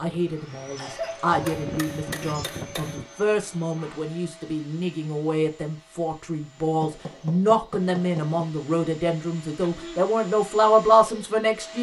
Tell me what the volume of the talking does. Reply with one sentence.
The volume of the talking goes up.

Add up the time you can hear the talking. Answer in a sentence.
You can hear the talking for 12 seconds altogether.